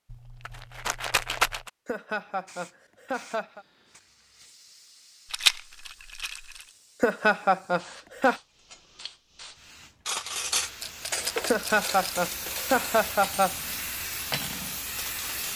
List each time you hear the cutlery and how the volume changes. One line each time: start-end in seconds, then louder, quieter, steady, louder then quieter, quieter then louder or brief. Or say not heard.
10.1-15.3 quieter then louder.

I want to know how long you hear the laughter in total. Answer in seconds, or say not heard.
5 s.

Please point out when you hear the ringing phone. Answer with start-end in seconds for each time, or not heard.
not heard.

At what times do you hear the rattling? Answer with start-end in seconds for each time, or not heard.
0.1-1.7, 5.3-6.6, 10.8-12.2.